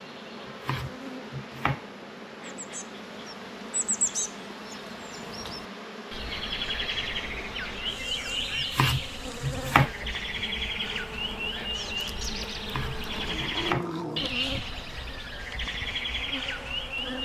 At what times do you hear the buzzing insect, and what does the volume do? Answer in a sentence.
You can hear the buzzing insect from 0.0 to 17.2 s, at a steady volume.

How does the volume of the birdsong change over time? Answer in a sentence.
The volume of the birdsong stays about the same.